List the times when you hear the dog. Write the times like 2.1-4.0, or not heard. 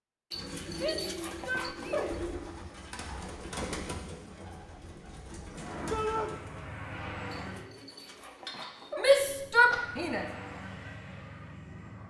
0.3-2.1, 7.3-9.2.